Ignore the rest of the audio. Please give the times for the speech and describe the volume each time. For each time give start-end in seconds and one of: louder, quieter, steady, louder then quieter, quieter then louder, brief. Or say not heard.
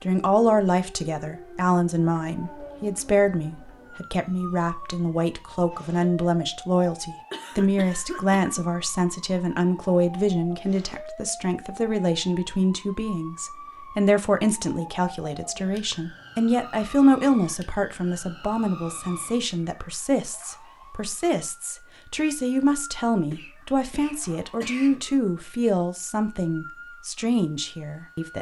0.0-28.3 steady.